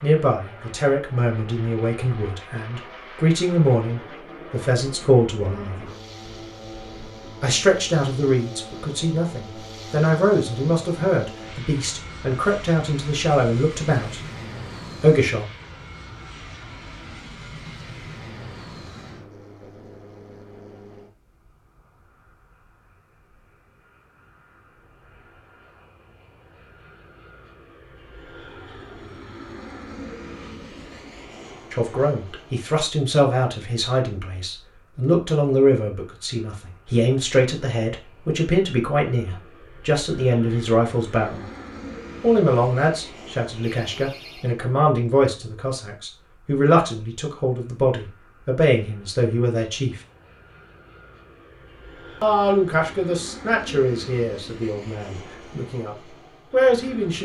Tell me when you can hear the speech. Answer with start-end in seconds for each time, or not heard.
0.0-5.9, 7.4-14.2, 15.0-15.4, 31.7-41.5, 42.2-50.0, 52.2-57.1.